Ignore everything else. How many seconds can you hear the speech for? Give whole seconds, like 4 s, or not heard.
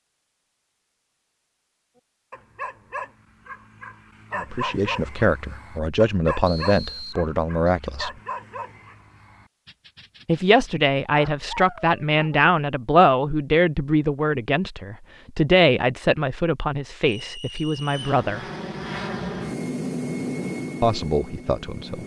13 s.